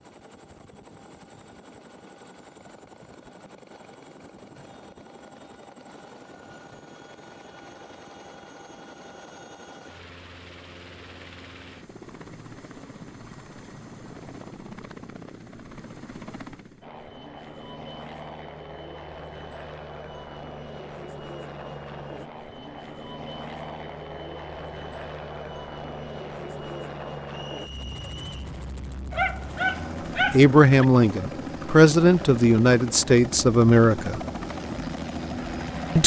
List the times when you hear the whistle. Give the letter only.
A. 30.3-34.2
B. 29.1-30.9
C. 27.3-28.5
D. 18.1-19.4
C.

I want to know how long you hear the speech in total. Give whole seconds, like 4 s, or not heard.
4 s.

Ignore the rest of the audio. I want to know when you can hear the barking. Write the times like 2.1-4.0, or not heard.
29.1-30.9.